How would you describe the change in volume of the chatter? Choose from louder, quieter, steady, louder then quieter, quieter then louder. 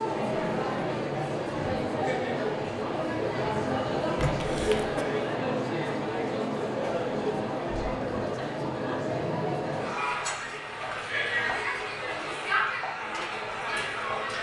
steady.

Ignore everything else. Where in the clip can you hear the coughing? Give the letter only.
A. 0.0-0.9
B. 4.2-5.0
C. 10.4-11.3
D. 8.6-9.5
B.